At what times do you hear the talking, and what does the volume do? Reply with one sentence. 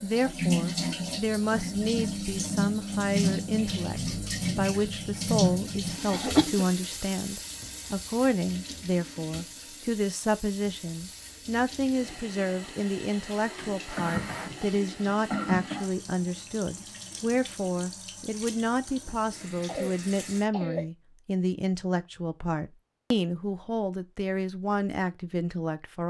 You can hear the talking from 0.0 to 26.0 s, at a steady volume.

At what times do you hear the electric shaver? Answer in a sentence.
The electric shaver can't be heard in this clip.